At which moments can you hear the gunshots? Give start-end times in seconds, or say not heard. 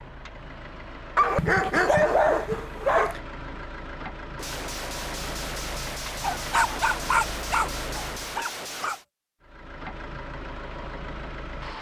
4.3-9.1.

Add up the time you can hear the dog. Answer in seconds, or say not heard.
5 s.